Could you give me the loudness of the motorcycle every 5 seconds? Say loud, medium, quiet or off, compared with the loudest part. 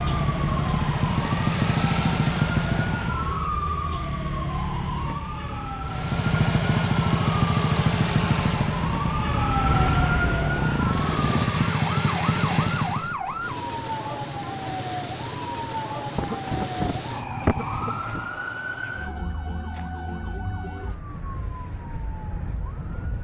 loud, loud, loud, off, off.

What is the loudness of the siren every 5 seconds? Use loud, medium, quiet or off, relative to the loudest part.
loud, loud, loud, loud, medium.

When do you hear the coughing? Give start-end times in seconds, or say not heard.
16.1-18.3.